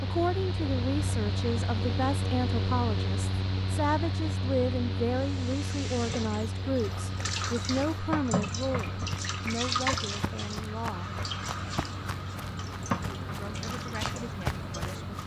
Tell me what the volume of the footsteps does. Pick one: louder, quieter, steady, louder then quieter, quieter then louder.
louder.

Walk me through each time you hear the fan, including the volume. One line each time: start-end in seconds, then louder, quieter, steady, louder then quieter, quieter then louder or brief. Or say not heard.
0.0-15.2 quieter.